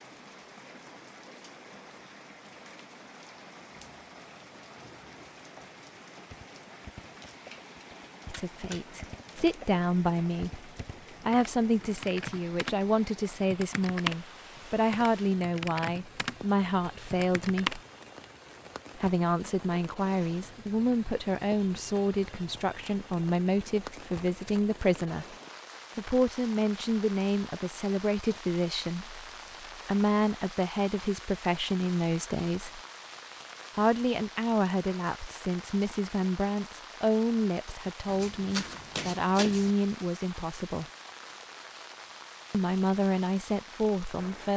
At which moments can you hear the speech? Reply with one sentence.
You can hear the speech from 8.2 to 17.8 s, from 18.9 to 25.4 s, from 25.9 to 32.8 s, from 33.8 to 40.9 s and from 42.5 to 44.5 s.